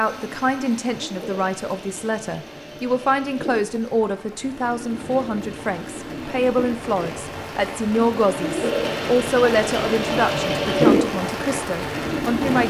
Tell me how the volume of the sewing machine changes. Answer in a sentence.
The loudness of the sewing machine goes up.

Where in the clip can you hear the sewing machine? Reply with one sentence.
The sewing machine can be heard from 0.1 to 12.6 s.